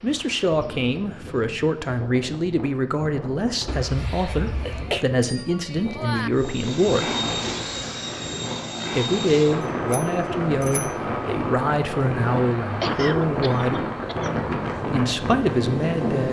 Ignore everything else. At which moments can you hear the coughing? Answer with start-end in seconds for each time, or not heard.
3.6-5.0, 12.8-14.3.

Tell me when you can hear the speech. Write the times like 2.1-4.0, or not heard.
0.0-7.1, 8.9-13.8, 14.9-16.2.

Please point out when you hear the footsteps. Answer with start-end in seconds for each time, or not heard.
not heard.